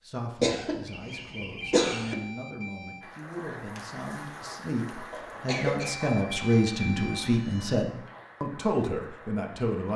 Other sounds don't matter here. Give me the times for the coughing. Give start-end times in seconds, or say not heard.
0.4-2.1, 5.1-6.0.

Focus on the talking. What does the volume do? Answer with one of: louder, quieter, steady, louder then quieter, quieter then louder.
louder.